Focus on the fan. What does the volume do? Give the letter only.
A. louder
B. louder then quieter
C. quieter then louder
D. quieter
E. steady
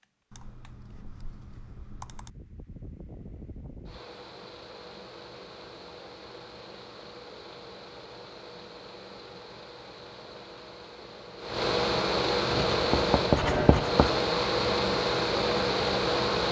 A.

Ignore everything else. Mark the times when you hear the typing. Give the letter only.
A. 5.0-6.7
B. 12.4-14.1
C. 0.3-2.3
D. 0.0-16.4
C.